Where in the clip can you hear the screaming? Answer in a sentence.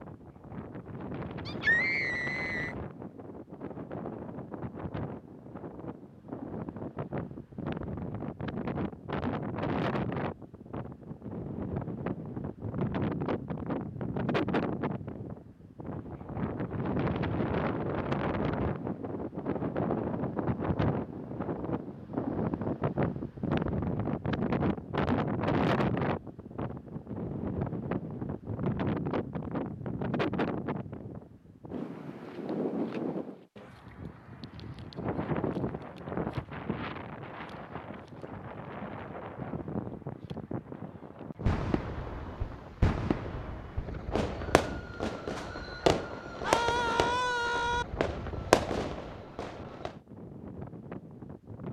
The screaming can be heard from 1.4 to 2.8 s and from 46.4 to 47.9 s.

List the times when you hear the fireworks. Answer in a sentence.
The fireworks can be heard from 41.5 to 50.0 s.